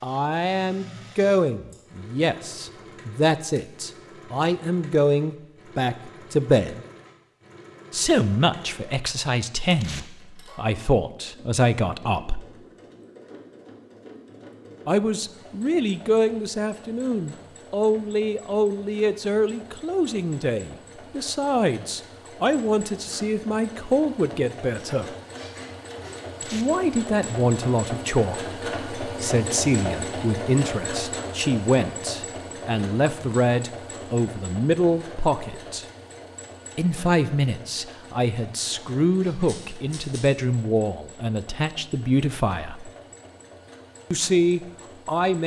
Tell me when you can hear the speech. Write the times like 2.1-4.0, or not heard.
0.0-6.8, 7.9-12.4, 14.8-25.1, 26.5-35.9, 36.8-42.9, 44.1-45.4.